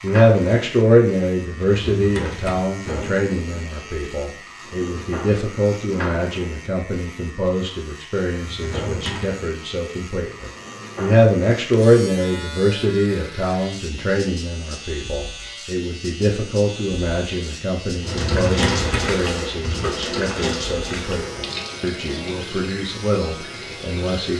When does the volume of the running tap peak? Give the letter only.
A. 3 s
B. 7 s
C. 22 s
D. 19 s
D.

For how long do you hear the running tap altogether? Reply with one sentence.
The running tap can be heard for 6 seconds in total.